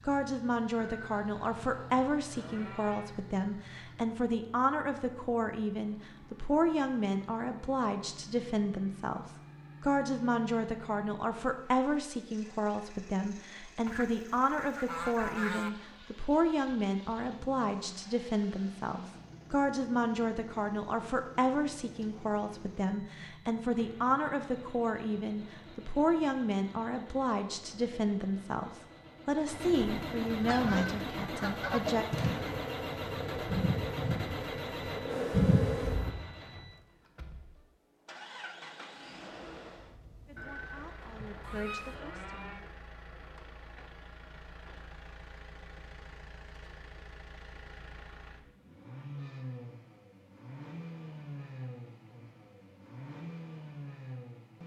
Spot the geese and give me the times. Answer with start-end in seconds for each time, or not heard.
13.8-15.7, 29.8-31.8, 41.4-42.0.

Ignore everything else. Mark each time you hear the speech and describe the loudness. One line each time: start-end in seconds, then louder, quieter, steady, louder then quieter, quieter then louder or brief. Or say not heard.
0.1-32.0 steady
40.2-42.7 brief.